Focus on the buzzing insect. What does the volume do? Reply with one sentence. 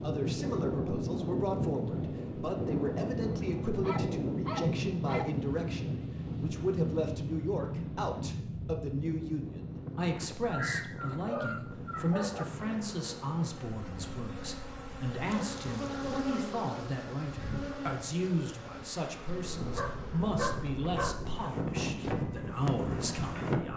The loudness of the buzzing insect goes up, then down.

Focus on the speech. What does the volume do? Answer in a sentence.
The loudness of the speech stays about the same.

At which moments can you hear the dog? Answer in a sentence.
The dog can be heard from 3.8 to 5.3 s, from 10.4 to 12.4 s and from 19.8 to 21.4 s.